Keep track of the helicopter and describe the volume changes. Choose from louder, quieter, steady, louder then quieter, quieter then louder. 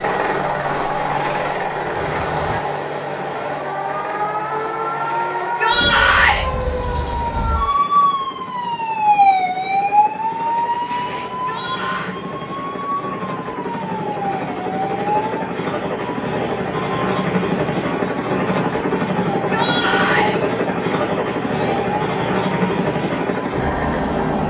quieter then louder.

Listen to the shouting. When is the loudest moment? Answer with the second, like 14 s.
6 s.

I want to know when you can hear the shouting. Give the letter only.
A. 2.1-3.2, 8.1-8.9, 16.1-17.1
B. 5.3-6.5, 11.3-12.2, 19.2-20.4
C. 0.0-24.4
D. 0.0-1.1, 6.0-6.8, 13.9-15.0
B.